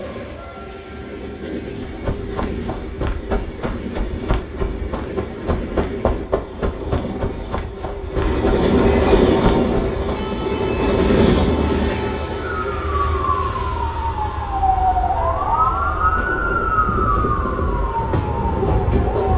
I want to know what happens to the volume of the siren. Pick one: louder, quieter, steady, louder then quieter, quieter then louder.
louder then quieter.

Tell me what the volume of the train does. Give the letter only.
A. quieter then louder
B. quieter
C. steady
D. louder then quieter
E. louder
D.